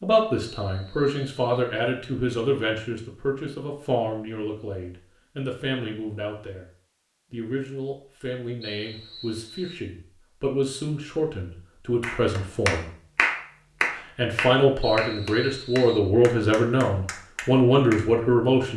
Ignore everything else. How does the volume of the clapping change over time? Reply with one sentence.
The volume of the clapping goes down.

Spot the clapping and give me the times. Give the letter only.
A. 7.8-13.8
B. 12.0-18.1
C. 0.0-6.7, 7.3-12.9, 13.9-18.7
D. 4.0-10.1
B.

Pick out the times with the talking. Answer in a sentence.
You can hear the talking from 0.0 to 6.7 s, from 7.3 to 12.9 s and from 13.9 to 18.7 s.